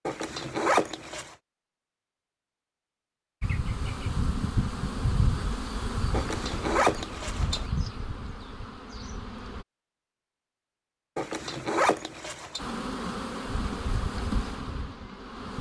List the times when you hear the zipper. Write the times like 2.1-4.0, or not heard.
0.1-1.4, 6.1-7.7, 11.2-12.6.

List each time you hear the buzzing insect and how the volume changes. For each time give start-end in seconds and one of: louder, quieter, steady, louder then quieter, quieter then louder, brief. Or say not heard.
3.4-9.7 quieter
12.6-15.5 brief.